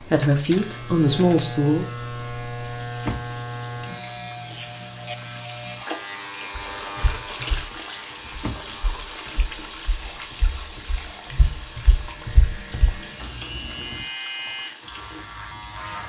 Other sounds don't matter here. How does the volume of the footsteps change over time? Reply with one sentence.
The loudness of the footsteps goes down, then up.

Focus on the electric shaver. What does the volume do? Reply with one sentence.
The volume of the electric shaver goes down, then up.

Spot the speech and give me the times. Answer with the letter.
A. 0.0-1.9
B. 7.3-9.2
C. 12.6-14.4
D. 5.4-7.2
A.